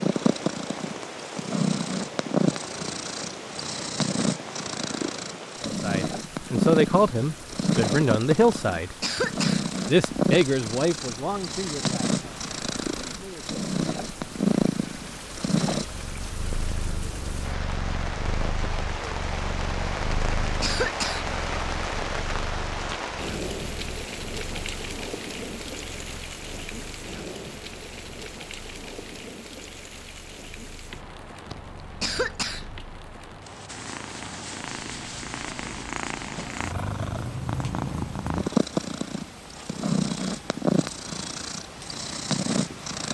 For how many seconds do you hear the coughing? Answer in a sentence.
You can hear the coughing for 4 seconds altogether.